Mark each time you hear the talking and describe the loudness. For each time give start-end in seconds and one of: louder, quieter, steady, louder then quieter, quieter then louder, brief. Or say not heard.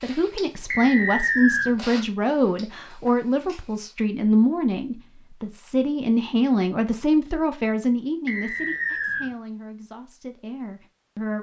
0.0-11.3 quieter.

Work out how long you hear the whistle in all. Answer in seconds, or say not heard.
2 s.